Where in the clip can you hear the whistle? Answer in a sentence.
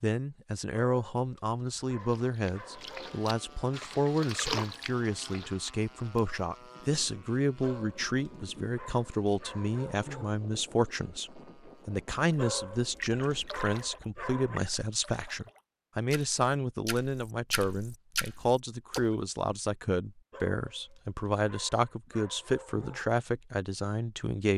You can't hear the whistle here.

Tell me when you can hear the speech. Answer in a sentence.
You can hear the speech from 0.0 to 24.5 s.